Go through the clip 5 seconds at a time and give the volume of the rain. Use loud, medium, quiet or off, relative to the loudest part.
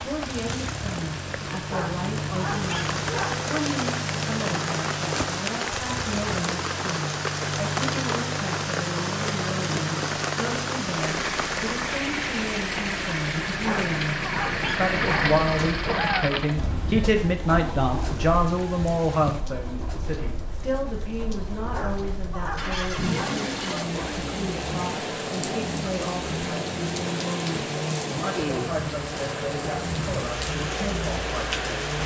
loud, loud, loud, medium, medium, loud, loud.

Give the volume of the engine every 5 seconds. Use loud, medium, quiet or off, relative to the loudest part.
loud, loud, loud, loud, medium, loud, loud.